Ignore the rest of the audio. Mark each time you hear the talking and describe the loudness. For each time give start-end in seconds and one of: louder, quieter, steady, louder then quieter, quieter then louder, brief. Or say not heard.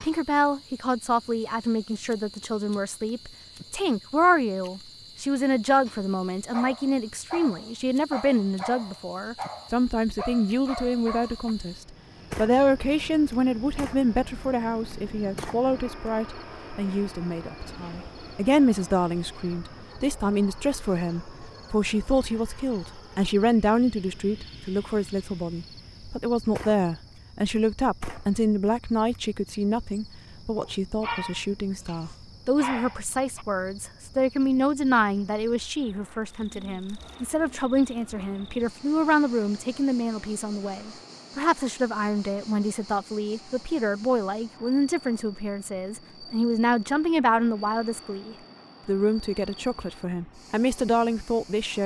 0.0-51.8 steady.